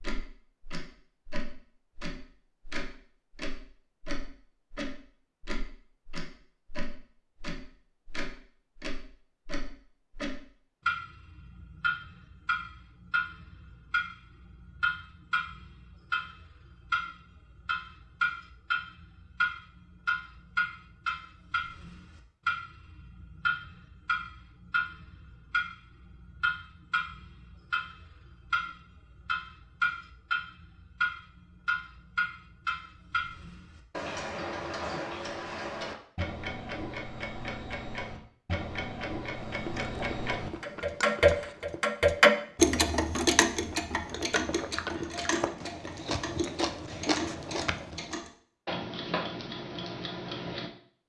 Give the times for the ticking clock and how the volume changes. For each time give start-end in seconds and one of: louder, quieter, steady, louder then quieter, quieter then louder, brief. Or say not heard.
0.0-50.7 louder.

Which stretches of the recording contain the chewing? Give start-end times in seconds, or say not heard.
39.4-48.1.